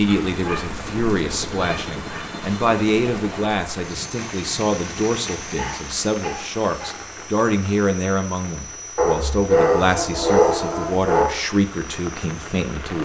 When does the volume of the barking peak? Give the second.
10 s.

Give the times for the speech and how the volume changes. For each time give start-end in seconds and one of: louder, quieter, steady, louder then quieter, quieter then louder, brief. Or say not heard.
0.0-13.0 steady.